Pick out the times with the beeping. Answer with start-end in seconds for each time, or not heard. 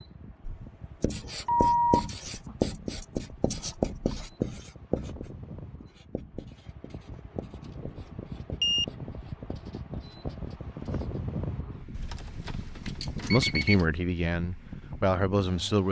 1.4-2.5, 7.7-8.8, 11.9-13.8.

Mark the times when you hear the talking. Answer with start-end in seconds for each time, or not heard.
13.3-15.8.